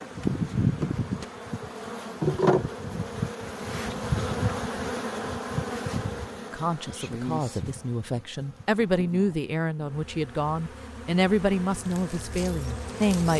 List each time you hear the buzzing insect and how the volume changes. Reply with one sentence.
You can hear the buzzing insect from 0.0 to 13.3 s, getting quieter then louder.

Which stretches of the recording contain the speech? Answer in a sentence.
The speech can be heard from 6.5 to 13.3 s.